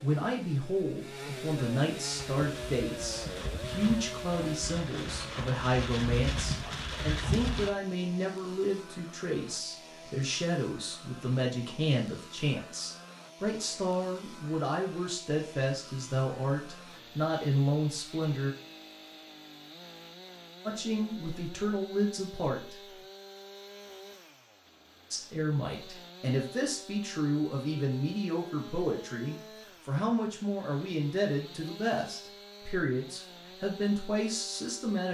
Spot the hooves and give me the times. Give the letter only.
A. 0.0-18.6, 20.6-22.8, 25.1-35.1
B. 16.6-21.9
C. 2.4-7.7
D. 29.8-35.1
C.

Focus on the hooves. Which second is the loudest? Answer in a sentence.
The loudest moment of the hooves is at 7 seconds.